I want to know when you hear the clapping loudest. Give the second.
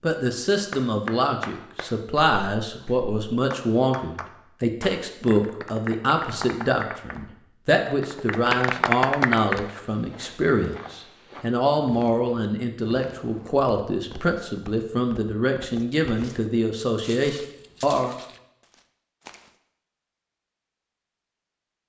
9 s.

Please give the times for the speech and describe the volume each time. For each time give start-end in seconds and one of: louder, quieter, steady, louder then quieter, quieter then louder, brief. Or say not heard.
0.0-18.1 steady.